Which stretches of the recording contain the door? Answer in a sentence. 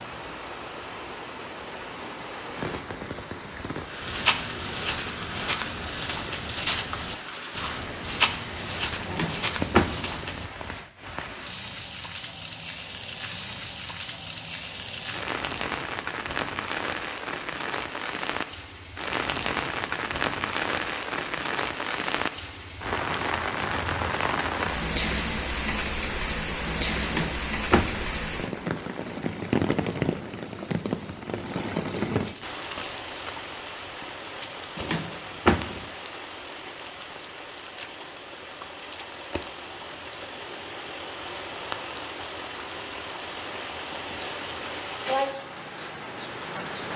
The door can be heard from 9.1 to 10.1 s, from 27.1 to 28.1 s and from 34.8 to 35.9 s.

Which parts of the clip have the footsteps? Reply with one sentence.
The footsteps can be heard from 4.0 to 10.5 s.